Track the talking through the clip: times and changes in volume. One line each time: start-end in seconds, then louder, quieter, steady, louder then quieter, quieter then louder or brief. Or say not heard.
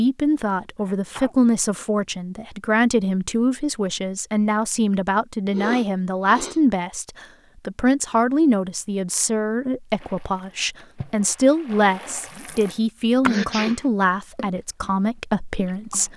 0.0-16.1 steady.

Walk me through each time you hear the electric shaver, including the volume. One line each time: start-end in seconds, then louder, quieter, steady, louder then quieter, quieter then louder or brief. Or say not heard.
not heard.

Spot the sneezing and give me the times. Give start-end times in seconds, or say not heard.
0.8-1.4, 5.5-6.6, 13.2-13.8.